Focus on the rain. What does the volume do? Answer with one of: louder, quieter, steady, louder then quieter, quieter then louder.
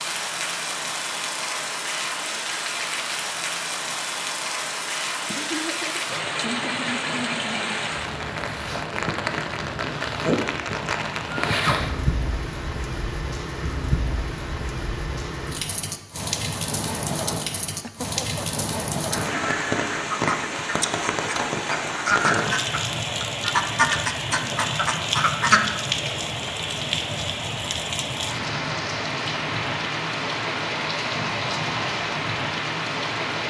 steady.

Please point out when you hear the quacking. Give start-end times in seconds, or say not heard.
19.1-25.6.